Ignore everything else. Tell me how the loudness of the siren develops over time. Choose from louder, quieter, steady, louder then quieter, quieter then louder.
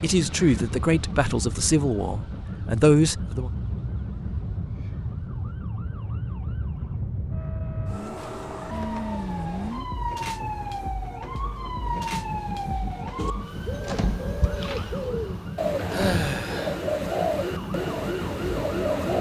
louder.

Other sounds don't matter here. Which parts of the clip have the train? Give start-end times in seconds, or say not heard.
0.0-19.0.